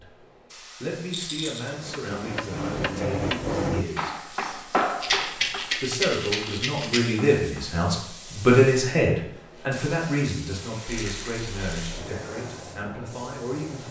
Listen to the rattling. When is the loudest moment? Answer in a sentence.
The volume of the rattling peaks at 5 seconds.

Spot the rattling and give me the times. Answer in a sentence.
You can hear the rattling from 1.1 to 1.7 s, from 5.0 to 7.0 s and from 10.8 to 11.9 s.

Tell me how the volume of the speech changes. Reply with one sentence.
The loudness of the speech goes up, then down.